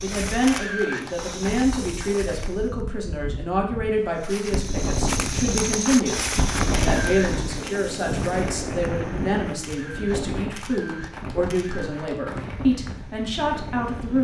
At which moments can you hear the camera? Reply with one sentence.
The camera can be heard from 0.5 to 1.0 s, from 6.7 to 7.8 s and from 9.6 to 11.9 s.